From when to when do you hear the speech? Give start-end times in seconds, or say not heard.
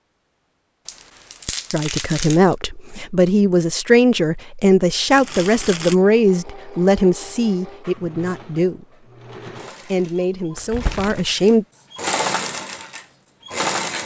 1.7-9.1, 9.8-11.7.